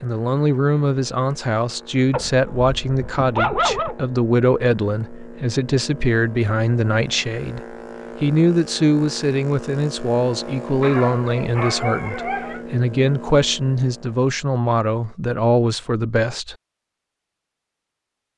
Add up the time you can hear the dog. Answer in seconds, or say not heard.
4 s.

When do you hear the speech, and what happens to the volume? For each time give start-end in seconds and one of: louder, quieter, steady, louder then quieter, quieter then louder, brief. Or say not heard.
0.0-16.6 steady.